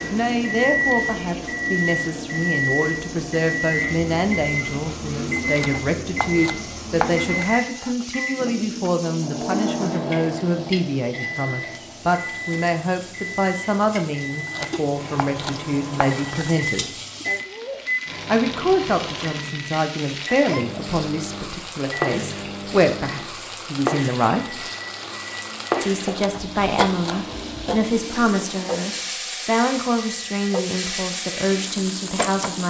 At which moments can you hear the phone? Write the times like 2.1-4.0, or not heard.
not heard.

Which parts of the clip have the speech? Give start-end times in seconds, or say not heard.
0.0-16.9, 18.2-24.6, 25.8-32.6.